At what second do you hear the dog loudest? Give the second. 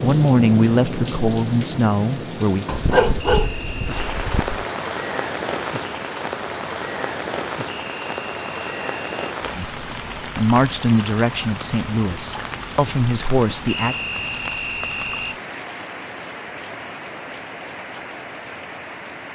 3 s.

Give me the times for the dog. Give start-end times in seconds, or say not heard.
2.6-4.6.